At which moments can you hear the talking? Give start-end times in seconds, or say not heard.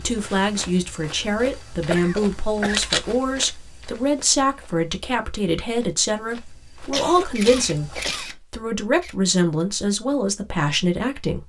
0.0-11.4.